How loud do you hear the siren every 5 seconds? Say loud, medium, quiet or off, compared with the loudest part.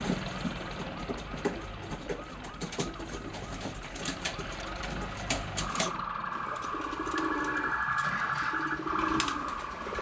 quiet, loud.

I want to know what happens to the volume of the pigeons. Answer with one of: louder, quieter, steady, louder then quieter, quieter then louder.
steady.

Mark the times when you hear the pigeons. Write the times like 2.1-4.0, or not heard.
0.0-9.9.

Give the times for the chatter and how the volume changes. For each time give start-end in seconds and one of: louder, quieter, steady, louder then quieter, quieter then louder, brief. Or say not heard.
not heard.